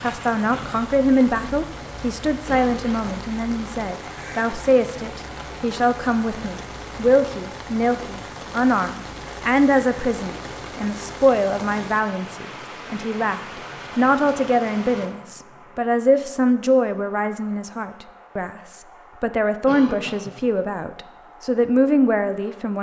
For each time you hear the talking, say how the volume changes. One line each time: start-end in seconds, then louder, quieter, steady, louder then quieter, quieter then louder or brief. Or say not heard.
0.0-22.7 steady.